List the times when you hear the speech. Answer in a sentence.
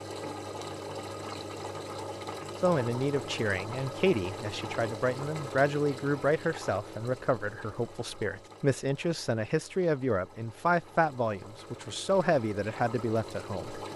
You can hear the speech from 2.6 to 13.8 s.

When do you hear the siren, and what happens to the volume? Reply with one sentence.
The siren can't be heard in this clip.